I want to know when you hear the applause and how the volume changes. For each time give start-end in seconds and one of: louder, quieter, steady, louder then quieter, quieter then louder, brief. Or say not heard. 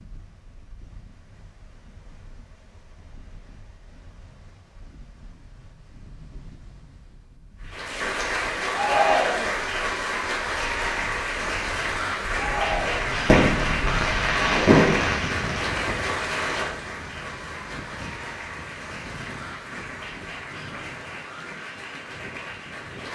7.6-23.1 quieter.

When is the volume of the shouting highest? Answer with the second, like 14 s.
9 s.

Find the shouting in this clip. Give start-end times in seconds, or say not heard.
8.7-9.6, 12.3-13.0.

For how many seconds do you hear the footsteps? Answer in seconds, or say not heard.
not heard.